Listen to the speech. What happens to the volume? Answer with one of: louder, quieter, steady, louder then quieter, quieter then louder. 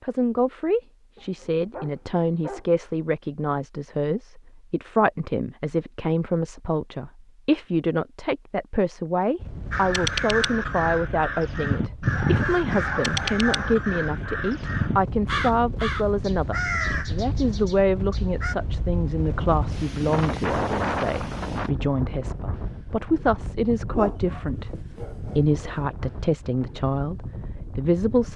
steady.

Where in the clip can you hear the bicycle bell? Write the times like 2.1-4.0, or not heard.
not heard.